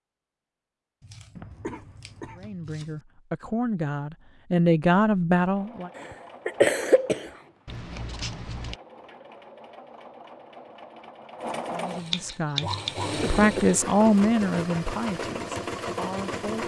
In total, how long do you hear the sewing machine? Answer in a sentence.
The sewing machine can be heard for 11 seconds in total.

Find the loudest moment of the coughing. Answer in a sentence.
The volume of the coughing peaks at 7 seconds.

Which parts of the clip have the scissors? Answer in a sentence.
The scissors can be heard from 1.0 to 3.0 s, from 7.7 to 8.8 s and from 12.1 to 12.9 s.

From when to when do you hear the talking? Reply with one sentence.
You can hear the talking from 2.4 to 5.9 s and from 11.7 to 16.6 s.